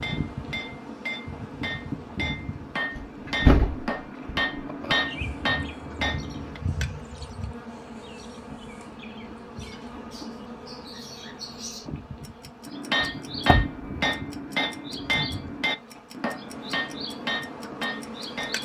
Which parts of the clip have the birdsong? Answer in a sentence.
You can hear the birdsong from 5.0 to 18.6 s.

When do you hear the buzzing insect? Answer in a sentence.
You can hear the buzzing insect from 0.0 to 18.6 s.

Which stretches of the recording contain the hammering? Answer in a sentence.
The hammering can be heard from 0.0 to 6.6 s and from 12.7 to 18.6 s.